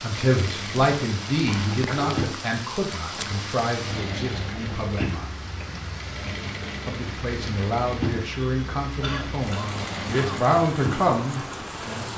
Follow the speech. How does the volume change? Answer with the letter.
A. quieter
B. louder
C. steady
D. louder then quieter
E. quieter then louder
E.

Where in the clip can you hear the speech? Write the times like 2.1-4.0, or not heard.
0.0-5.3, 6.8-12.1.